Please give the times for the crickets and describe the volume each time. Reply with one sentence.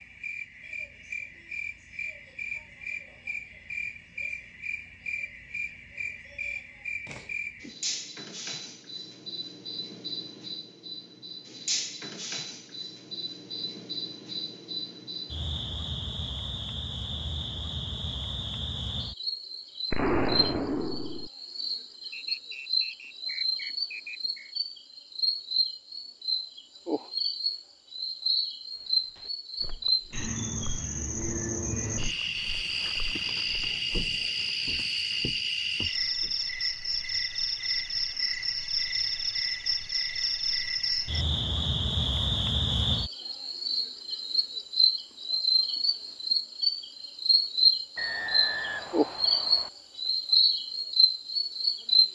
The crickets can be heard from 0.0 to 52.1 s, getting louder.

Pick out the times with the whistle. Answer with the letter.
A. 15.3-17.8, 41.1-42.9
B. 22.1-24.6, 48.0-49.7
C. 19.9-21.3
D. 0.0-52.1
B.